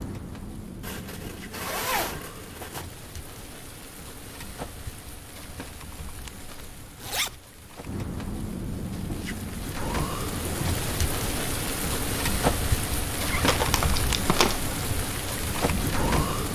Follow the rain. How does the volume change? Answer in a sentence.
The loudness of the rain goes up.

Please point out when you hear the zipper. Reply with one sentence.
The zipper can be heard from 0.8 to 2.9 s, from 6.8 to 7.4 s and from 13.2 to 13.6 s.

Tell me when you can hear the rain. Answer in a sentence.
The rain can be heard from 0.0 to 16.5 s.